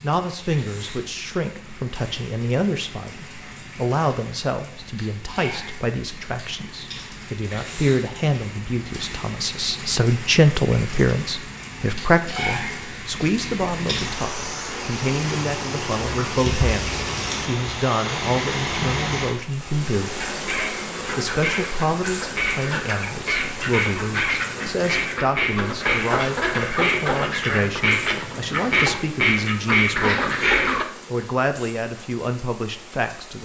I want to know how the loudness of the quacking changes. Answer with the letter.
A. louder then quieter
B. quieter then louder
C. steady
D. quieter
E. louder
E.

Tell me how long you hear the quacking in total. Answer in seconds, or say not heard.
11 s.